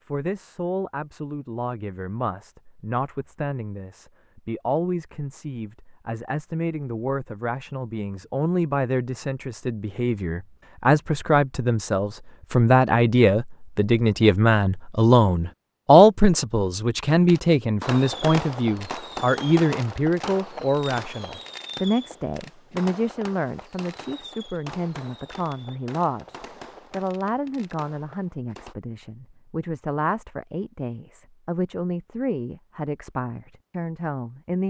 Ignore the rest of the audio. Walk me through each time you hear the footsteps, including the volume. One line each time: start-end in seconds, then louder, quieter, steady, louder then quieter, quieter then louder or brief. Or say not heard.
not heard.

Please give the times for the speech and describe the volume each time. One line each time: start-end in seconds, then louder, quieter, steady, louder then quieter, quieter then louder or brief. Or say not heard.
0.1-34.6 louder then quieter.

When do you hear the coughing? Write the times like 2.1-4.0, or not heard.
not heard.